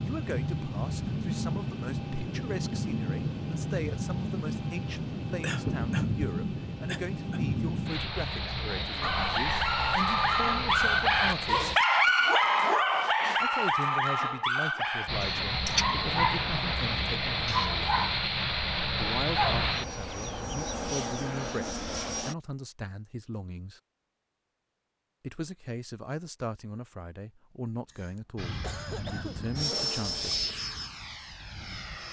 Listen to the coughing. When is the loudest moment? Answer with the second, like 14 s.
6 s.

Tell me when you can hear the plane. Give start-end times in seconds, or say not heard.
0.0-11.8, 15.1-22.4, 28.4-32.0.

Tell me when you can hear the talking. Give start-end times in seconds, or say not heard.
0.0-11.8, 13.4-18.1, 18.9-23.8, 25.2-30.4.